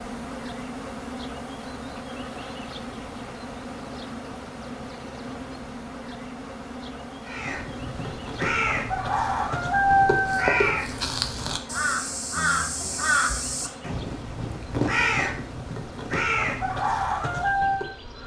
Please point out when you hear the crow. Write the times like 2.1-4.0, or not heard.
7.2-17.9.